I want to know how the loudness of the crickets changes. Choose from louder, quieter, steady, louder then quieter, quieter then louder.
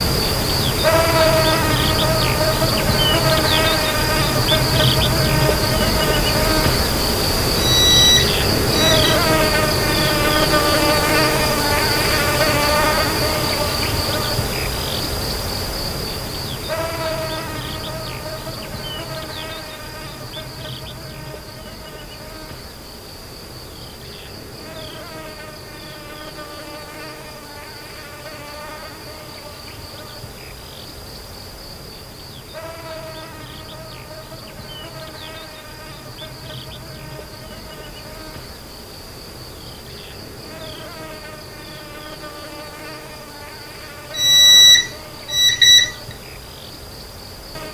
quieter.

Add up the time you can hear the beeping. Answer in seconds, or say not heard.
3 s.